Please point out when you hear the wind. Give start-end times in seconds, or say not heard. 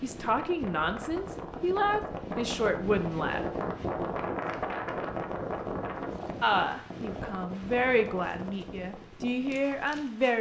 0.0-10.3.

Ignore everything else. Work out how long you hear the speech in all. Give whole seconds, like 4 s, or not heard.
7 s.